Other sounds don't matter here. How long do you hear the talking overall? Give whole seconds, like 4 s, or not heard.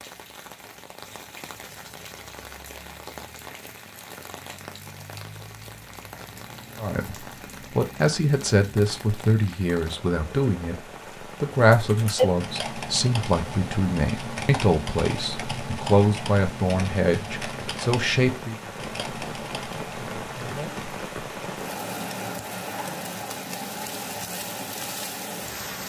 12 s.